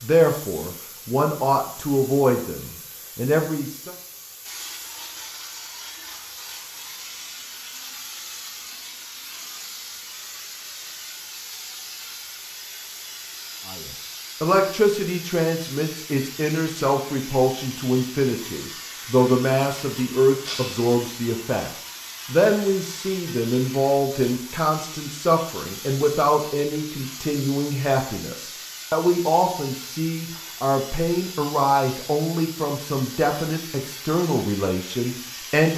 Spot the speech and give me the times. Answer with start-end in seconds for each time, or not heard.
0.0-4.0, 13.7-35.7.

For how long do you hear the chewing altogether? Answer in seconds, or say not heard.
not heard.